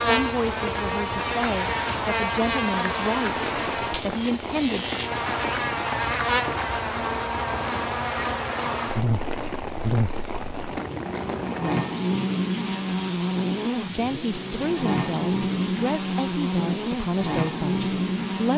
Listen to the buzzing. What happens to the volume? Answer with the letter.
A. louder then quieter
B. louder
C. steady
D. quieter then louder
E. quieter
C.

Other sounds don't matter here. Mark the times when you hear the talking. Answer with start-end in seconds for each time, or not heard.
0.1-5.0, 13.8-18.5.